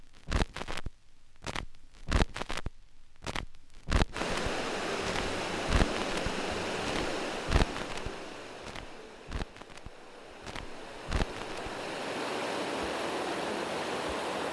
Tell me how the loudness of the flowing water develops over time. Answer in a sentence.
The volume of the flowing water goes down, then up.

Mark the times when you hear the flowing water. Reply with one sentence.
You can hear the flowing water from 4.1 to 14.4 s.